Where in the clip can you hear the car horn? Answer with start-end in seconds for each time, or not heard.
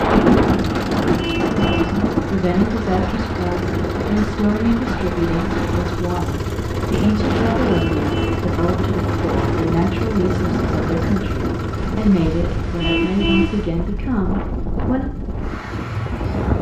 1.1-2.0, 7.7-8.4, 12.8-13.6.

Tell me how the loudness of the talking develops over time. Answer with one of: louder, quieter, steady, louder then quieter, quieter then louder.
steady.